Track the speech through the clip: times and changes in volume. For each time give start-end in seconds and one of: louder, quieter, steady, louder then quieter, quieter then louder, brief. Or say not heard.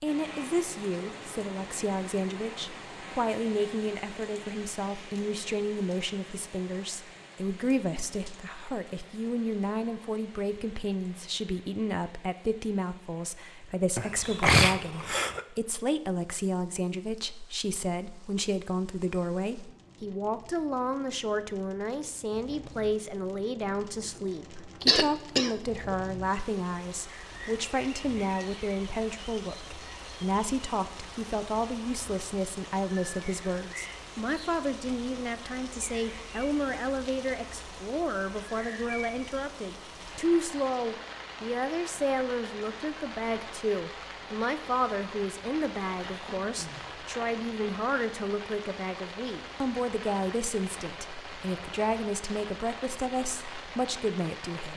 0.0-54.7 steady.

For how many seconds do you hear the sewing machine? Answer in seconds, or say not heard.
not heard.